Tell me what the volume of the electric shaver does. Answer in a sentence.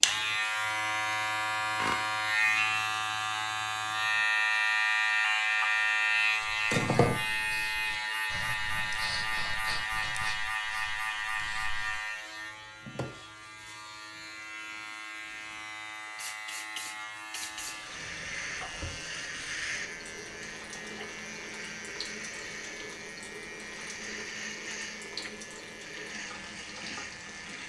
The loudness of the electric shaver goes down.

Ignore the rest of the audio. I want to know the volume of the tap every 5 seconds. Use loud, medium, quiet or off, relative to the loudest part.
off, off, off, loud, loud, loud.